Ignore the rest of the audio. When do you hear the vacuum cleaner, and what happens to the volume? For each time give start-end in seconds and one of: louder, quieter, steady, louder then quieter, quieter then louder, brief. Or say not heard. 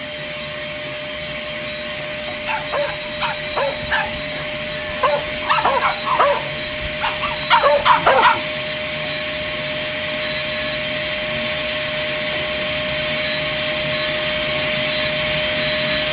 0.0-16.0 louder.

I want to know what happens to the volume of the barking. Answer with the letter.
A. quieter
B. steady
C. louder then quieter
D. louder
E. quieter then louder
D.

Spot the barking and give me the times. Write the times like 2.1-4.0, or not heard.
2.4-8.4.